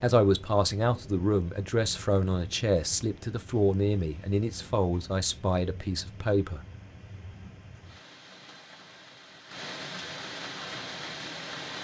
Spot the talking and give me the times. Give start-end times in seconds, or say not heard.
0.0-6.7.